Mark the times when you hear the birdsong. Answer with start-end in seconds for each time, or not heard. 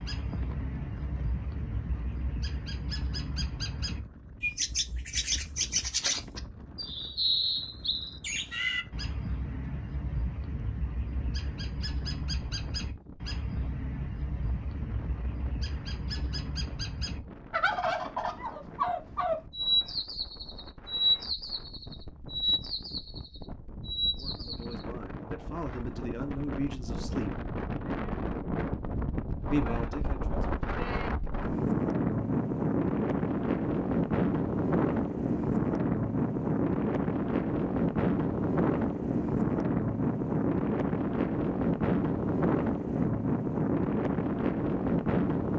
0.0-24.9.